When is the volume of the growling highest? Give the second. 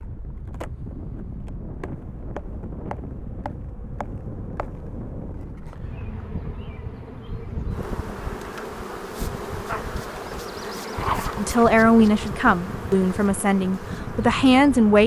11 s.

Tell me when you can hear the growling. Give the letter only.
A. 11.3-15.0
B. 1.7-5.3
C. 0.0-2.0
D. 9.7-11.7
D.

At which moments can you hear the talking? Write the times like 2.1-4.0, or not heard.
11.3-15.0.